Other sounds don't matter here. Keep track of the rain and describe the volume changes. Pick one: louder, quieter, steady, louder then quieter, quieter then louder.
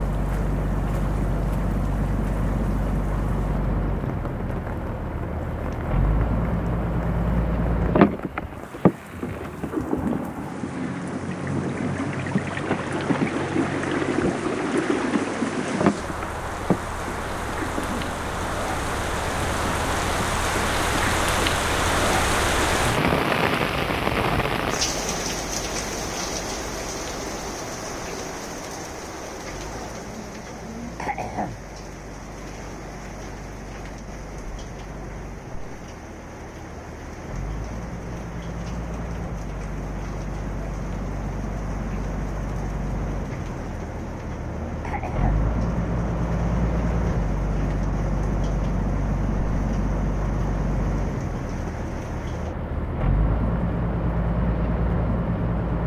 louder then quieter.